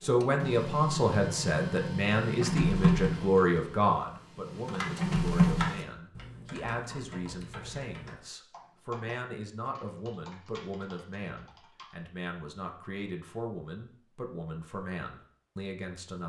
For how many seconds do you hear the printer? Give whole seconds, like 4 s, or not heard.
6 s.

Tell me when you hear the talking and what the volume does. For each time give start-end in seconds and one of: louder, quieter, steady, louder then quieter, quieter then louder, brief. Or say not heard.
0.0-16.2 quieter.